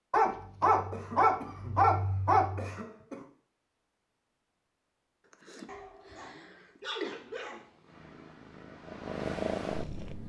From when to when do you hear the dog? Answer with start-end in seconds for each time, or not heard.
0.1-2.8, 5.7-7.6.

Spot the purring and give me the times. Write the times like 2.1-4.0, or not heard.
7.5-10.2.